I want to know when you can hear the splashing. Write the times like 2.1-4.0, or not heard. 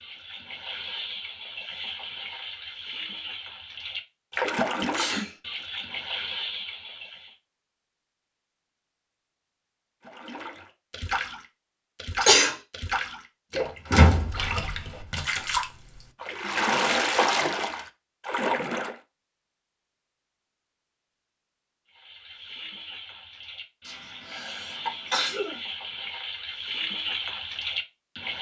0.0-7.3, 10.1-18.9, 21.9-28.3.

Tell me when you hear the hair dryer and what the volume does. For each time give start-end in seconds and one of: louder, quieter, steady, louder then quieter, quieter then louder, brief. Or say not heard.
not heard.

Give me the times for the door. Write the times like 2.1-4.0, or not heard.
13.8-15.4.